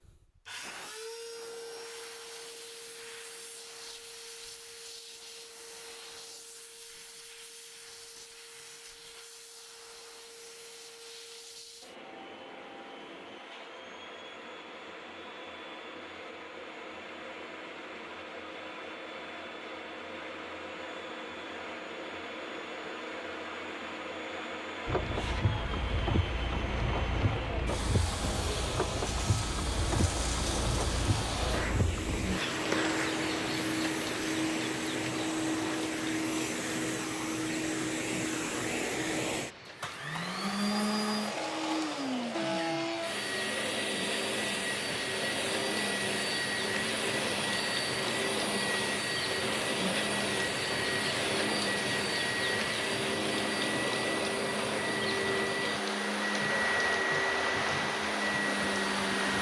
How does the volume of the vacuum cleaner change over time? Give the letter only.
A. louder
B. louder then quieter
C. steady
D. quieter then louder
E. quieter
A.